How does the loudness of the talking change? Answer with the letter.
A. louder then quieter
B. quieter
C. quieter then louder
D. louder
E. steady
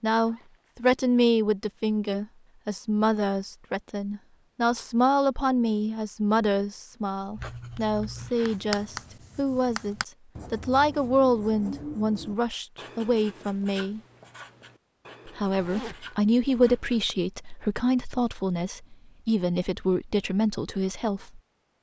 E.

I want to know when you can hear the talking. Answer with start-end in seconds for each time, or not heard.
0.0-14.0, 15.2-21.4.